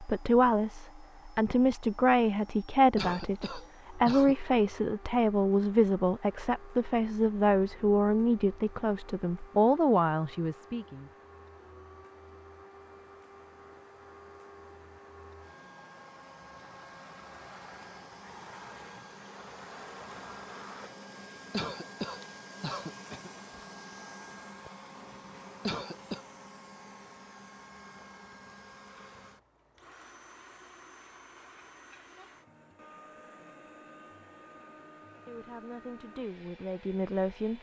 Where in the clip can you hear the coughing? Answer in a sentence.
You can hear the coughing from 3.0 to 4.3 s, from 21.5 to 23.3 s and from 25.6 to 26.2 s.